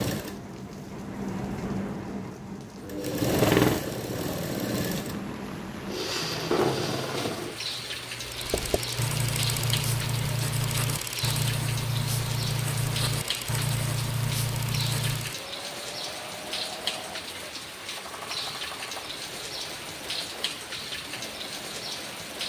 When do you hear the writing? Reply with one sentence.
The writing can be heard from 8.3 to 15.3 s.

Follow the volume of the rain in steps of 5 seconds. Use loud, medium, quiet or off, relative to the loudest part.
quiet, loud, loud, loud, loud.